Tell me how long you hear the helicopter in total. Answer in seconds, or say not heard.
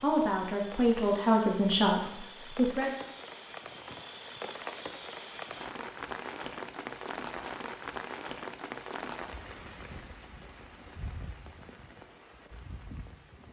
not heard.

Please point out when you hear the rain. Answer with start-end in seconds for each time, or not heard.
0.0-13.4.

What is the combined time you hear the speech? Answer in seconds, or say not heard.
3 s.